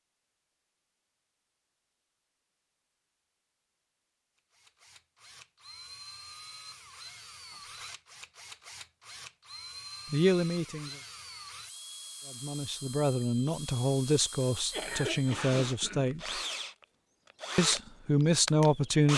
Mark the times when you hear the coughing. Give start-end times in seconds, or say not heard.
14.4-16.1.